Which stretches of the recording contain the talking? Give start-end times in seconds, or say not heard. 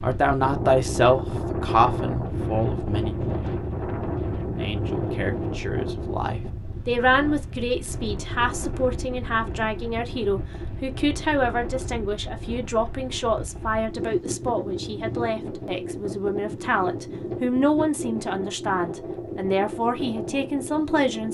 0.0-3.1, 4.6-21.2.